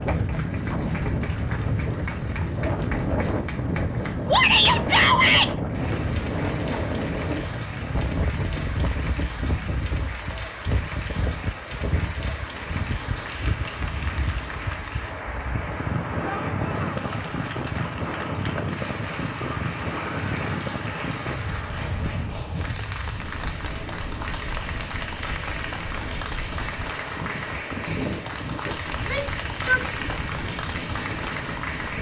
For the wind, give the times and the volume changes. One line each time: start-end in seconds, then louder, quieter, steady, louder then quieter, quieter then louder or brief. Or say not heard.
0.0-31.9 quieter.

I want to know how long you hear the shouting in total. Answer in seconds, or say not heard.
3 s.